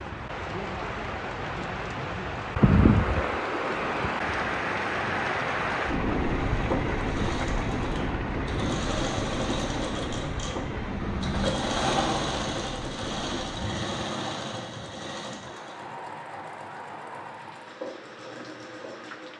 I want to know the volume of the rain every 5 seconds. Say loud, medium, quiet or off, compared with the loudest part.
loud, loud, medium, quiet.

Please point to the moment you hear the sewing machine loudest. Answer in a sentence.
The volume of the sewing machine peaks at 12 seconds.